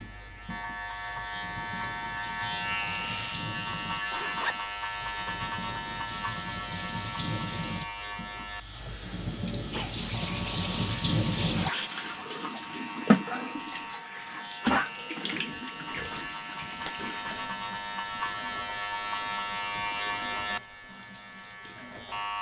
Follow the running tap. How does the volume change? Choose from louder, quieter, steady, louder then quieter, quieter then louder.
louder then quieter.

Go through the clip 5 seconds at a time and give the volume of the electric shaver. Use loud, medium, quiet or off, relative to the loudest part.
loud, loud, medium, loud, loud.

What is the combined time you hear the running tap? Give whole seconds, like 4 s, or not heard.
22 s.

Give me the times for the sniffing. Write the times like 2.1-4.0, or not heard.
2.8-3.5, 9.6-11.9, 19.8-20.4.